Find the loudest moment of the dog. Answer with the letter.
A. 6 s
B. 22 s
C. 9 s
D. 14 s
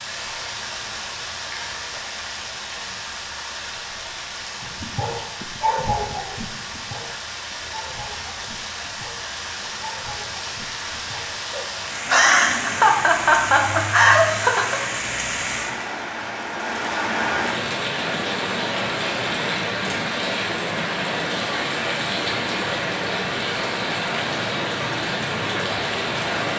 A.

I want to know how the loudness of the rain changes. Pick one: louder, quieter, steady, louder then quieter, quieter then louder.
louder.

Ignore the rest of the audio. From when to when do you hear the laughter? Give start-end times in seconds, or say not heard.
12.1-14.8.